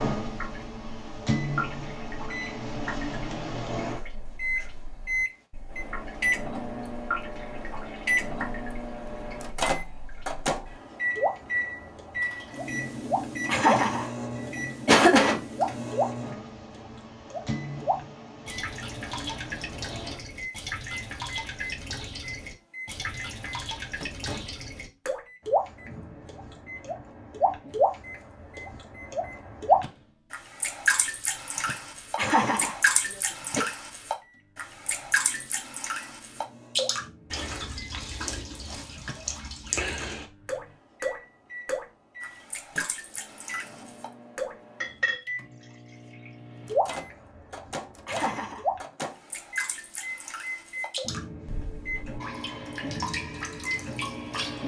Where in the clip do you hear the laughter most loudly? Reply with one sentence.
The loudest moment of the laughter is at 15 seconds.